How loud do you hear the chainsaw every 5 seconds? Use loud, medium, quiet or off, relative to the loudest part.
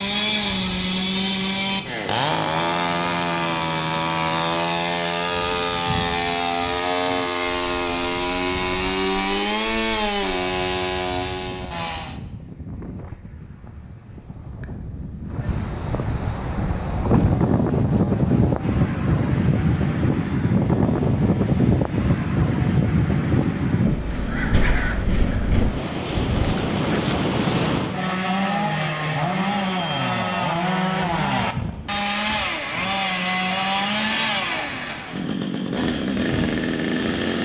loud, loud, loud, quiet, quiet, loud, loud, loud.